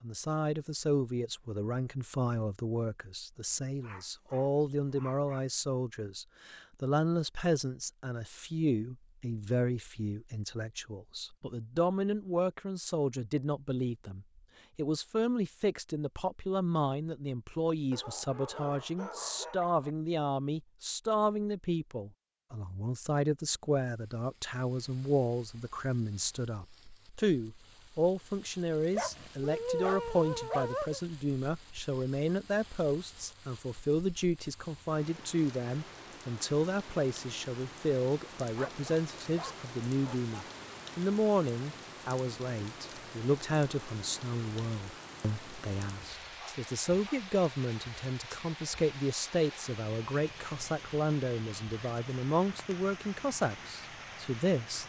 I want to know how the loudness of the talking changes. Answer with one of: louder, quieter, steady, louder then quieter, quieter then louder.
steady.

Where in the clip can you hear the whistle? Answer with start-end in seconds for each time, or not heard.
not heard.